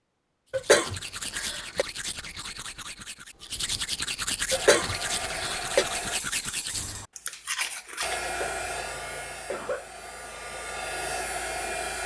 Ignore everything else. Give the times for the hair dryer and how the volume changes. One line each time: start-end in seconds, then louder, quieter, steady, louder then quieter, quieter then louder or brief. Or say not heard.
4.5-6.2 brief
8.0-12.0 quieter then louder.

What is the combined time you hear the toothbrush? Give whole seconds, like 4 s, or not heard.
8 s.